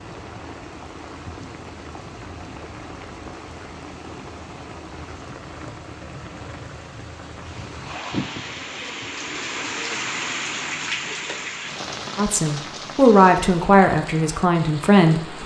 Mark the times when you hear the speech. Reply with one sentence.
The speech can be heard from 12.2 to 15.4 s.